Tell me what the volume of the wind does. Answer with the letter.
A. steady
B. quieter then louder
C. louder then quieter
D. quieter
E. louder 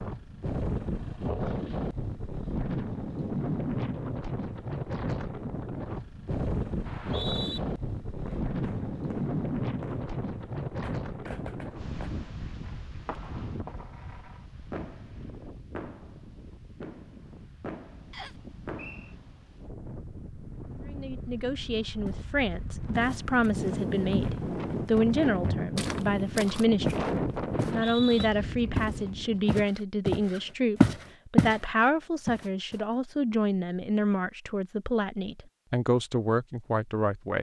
B.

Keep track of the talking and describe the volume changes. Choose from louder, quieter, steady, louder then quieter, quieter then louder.
steady.